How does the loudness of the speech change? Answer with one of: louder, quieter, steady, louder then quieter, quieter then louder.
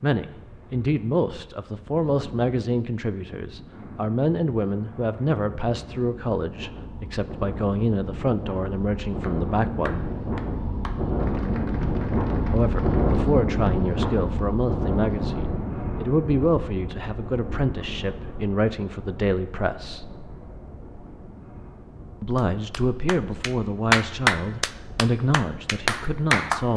steady.